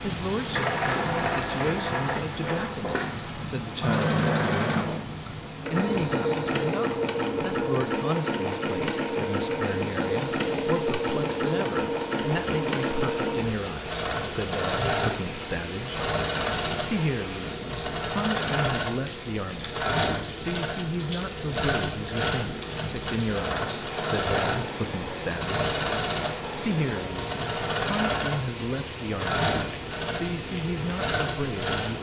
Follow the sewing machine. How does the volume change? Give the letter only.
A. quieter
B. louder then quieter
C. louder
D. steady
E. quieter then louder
D.